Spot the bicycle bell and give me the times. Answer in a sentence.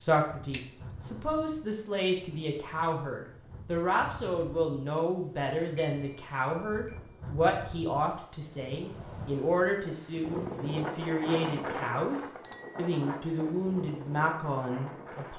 You can hear the bicycle bell from 0.5 to 1.1 s, from 5.8 to 7.0 s and from 12.4 to 12.9 s.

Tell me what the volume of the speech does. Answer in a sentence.
The loudness of the speech stays about the same.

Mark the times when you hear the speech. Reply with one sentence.
You can hear the speech from 0.0 to 15.3 s.